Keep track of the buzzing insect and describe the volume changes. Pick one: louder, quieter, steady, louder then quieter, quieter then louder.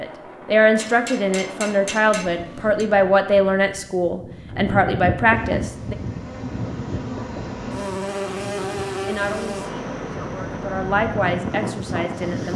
louder then quieter.